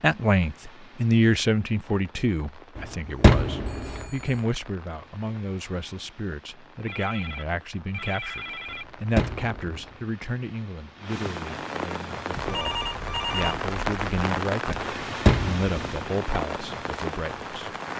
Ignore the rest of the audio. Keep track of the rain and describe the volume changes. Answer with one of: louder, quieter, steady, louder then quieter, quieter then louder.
louder.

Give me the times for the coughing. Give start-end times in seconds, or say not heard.
not heard.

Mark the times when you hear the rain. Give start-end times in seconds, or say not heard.
0.0-17.9.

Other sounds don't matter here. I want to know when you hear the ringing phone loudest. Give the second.
13 s.